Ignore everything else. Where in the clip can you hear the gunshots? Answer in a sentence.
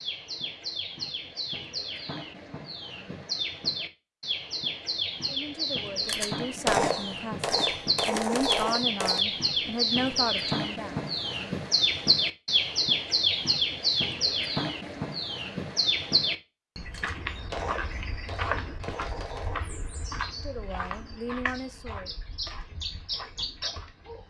You can hear the gunshots from 6.0 to 9.2 s and from 16.9 to 19.6 s.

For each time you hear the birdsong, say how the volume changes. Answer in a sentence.
The birdsong can be heard from 0.0 to 24.2 s, getting louder then quieter.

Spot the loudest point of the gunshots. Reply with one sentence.
The volume of the gunshots peaks at 7 seconds.